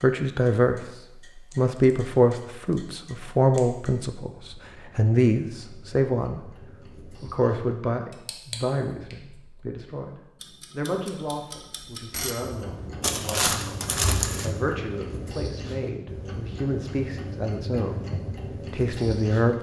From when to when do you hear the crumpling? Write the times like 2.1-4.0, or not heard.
13.0-14.5.